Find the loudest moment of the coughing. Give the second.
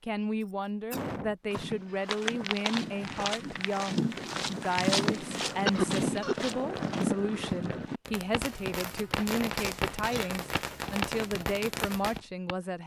6 s.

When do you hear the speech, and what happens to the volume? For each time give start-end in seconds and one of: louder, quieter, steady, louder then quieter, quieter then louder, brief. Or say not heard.
0.0-12.8 steady.